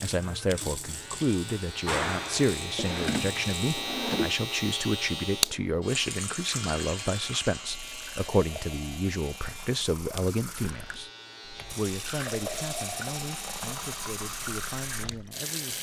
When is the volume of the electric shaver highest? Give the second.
5 s.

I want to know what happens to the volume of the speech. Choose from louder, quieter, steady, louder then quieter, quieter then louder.
quieter.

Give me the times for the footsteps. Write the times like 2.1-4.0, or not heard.
not heard.